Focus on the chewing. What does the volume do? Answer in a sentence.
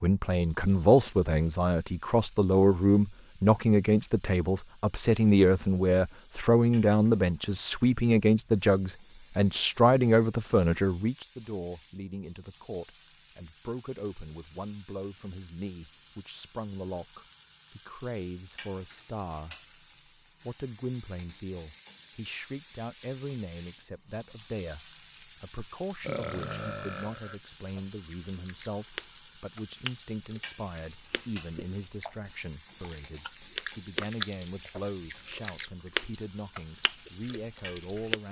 The loudness of the chewing goes down, then up.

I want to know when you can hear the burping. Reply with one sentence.
You can hear the burping from 26.0 to 27.4 s.